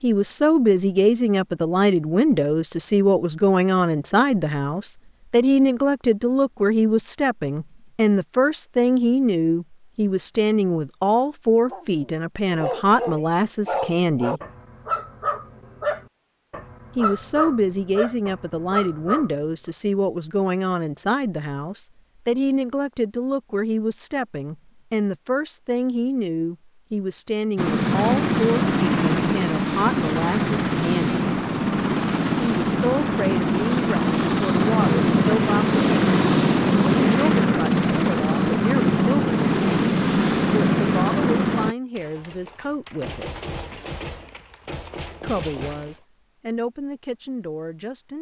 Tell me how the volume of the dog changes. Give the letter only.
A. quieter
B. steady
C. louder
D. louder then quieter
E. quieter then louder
B.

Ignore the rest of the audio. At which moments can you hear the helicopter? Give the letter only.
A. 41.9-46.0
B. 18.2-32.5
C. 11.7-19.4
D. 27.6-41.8
D.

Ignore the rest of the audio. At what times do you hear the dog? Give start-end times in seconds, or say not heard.
11.7-19.4.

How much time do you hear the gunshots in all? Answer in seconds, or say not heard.
4 s.